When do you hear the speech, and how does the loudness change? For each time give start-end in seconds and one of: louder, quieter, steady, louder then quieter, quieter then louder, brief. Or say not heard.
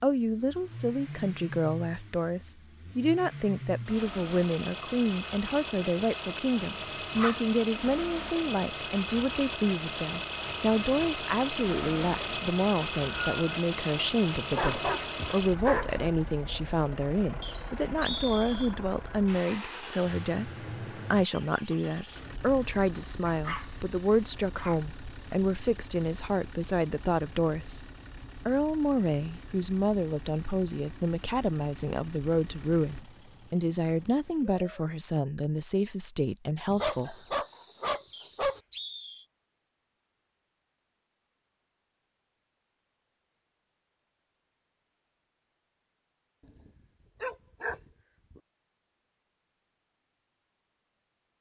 0.0-27.9 steady
28.4-37.1 steady.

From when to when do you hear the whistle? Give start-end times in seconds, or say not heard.
12.7-13.6, 17.4-18.8, 38.1-39.2.